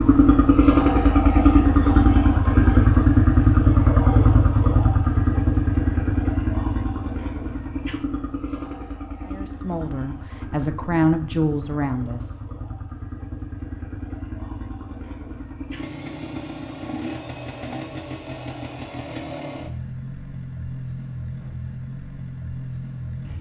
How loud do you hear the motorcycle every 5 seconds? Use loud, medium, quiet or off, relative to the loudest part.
loud, medium, quiet, quiet, quiet.